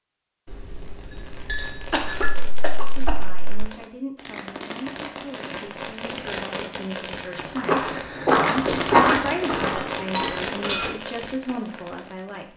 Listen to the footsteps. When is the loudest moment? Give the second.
9 s.